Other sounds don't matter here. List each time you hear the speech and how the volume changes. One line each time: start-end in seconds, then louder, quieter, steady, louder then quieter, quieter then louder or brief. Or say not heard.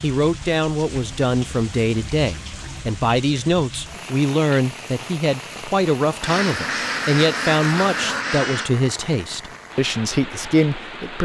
0.0-11.1 steady.